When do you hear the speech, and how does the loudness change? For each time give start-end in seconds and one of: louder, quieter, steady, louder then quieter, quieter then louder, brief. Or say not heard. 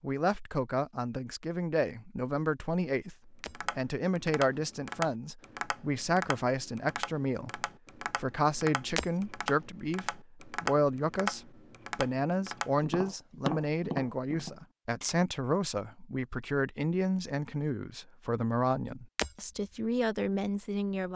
0.0-21.1 steady.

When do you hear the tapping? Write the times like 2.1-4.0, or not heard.
3.5-15.2.